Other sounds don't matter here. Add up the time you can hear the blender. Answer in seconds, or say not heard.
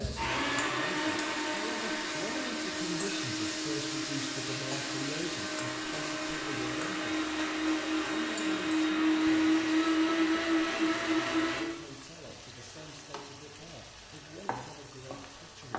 12 s.